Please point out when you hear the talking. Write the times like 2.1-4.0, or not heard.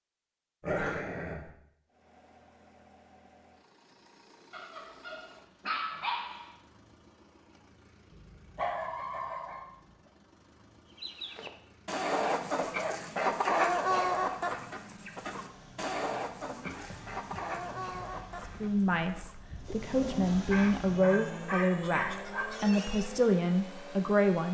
18.4-24.4.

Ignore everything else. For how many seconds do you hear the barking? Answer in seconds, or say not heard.
10 s.